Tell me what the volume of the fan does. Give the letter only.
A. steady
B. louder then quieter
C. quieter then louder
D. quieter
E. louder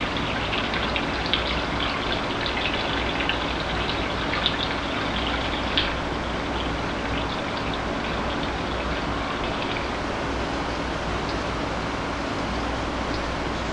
A.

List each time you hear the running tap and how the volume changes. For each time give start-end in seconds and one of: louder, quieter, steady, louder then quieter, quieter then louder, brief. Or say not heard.
0.0-13.6 quieter.